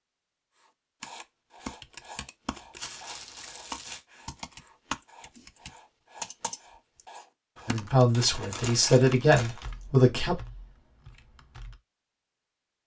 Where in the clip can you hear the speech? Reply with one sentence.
You can hear the speech from 7.7 to 10.4 s.